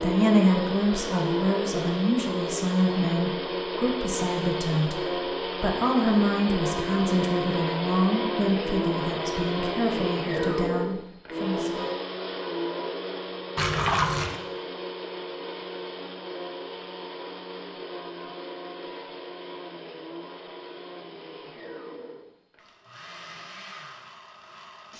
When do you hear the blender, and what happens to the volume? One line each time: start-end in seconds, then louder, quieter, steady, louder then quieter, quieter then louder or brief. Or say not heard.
0.0-24.9 quieter.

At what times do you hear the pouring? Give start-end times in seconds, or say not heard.
13.6-14.4.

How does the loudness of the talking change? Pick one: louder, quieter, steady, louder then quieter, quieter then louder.
quieter.